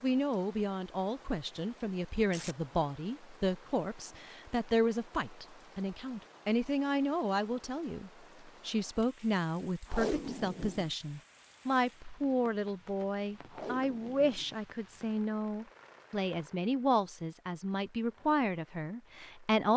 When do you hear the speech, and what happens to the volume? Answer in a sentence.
You can hear the speech from 0.0 to 19.7 s, at a steady volume.